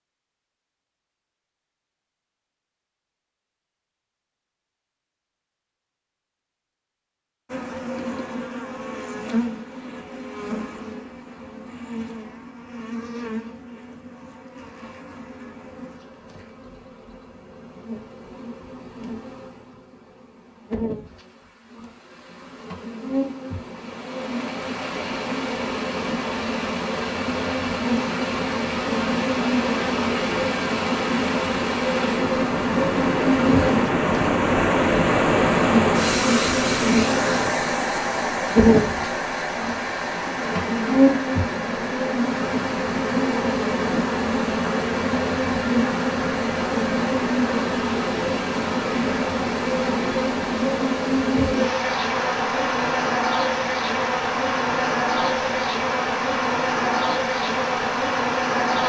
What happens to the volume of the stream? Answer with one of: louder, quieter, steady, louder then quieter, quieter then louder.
louder then quieter.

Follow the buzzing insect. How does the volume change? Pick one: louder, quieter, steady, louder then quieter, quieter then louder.
louder.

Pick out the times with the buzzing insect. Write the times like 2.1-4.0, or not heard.
7.5-58.8.